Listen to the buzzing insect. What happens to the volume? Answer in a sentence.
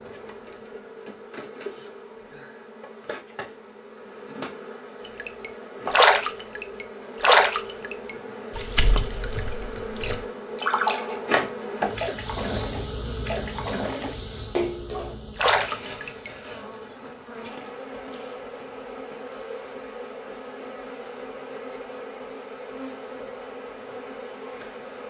The loudness of the buzzing insect goes up, then down.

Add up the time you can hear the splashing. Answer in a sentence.
You can hear the splashing for 11 seconds altogether.